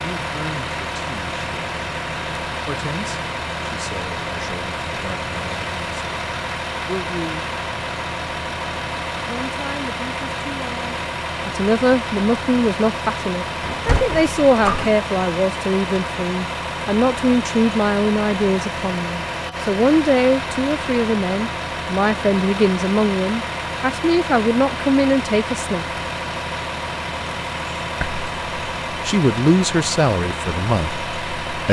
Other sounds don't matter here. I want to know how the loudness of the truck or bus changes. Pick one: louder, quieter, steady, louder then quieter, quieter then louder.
steady.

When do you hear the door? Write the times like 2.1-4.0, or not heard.
13.6-14.9.